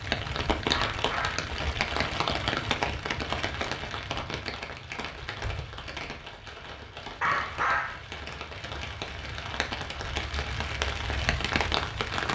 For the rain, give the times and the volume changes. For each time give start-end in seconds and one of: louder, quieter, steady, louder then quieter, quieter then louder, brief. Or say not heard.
0.0-12.3 quieter then louder.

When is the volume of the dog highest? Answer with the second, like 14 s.
8 s.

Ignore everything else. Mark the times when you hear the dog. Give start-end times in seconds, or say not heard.
0.7-1.4, 7.2-8.1.